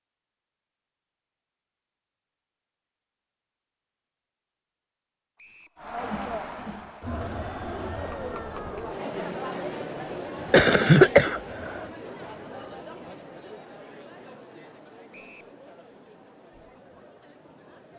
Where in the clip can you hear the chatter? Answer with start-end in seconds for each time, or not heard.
5.8-17.9.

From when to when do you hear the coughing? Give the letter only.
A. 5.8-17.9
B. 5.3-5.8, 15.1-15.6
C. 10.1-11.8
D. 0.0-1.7
C.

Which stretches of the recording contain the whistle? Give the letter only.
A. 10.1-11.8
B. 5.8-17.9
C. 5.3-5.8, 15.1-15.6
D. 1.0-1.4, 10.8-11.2
C.